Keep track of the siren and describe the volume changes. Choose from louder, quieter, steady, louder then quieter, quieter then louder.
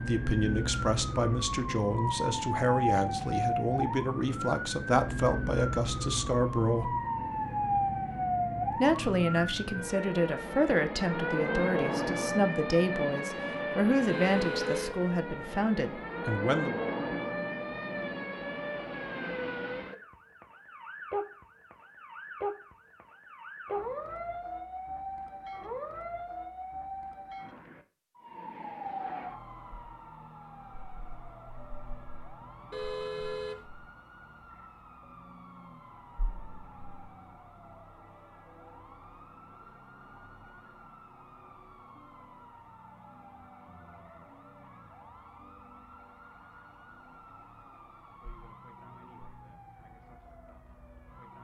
quieter.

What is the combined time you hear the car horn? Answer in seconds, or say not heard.
2 s.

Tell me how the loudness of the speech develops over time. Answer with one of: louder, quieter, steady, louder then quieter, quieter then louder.
steady.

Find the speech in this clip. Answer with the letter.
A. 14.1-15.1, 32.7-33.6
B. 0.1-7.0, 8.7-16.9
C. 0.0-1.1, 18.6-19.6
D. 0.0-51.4
B.